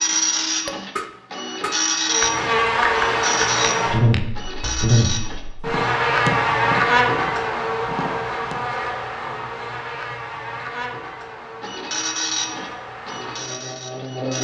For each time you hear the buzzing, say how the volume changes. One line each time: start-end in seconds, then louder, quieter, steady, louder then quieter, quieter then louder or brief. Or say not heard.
2.0-14.3 quieter.